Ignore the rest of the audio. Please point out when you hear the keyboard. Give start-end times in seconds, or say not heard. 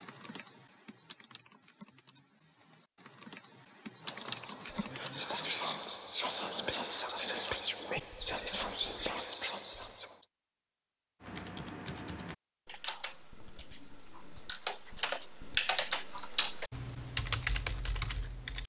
0.0-5.8, 11.2-18.6.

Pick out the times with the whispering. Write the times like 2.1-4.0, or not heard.
4.0-10.1.